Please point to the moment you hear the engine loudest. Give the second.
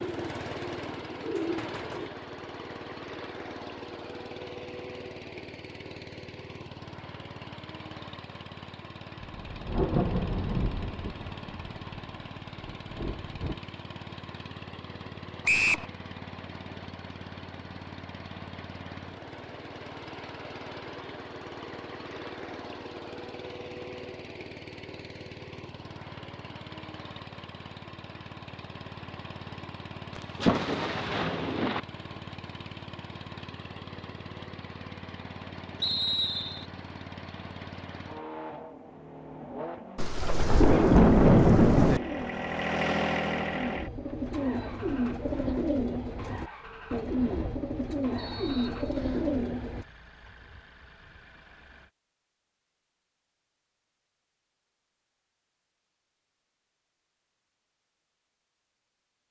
43 s.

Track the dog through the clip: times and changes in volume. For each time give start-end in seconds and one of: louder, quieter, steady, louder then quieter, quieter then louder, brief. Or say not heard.
not heard.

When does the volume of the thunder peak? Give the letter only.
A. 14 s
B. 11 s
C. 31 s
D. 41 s
D.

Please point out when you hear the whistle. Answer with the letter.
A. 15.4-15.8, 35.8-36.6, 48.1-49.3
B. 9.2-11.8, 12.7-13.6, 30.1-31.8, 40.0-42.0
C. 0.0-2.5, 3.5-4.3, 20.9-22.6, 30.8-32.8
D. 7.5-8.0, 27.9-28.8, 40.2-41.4
A.